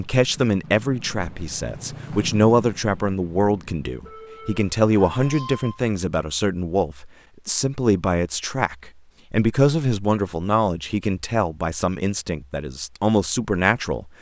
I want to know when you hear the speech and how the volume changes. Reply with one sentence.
You can hear the speech from 0.0 to 14.1 s, at a steady volume.